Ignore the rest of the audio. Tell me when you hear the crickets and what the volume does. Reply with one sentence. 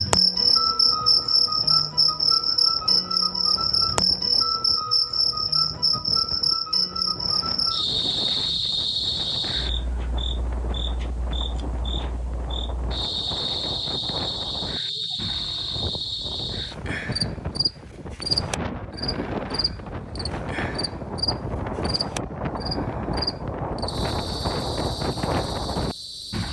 You can hear the crickets from 0.0 to 26.4 s, getting quieter.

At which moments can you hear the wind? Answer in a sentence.
The wind can be heard from 0.0 to 26.4 s.